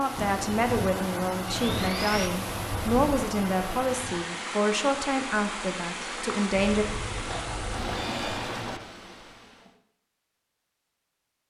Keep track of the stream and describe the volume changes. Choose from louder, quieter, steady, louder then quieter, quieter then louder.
steady.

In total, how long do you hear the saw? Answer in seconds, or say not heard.
3 s.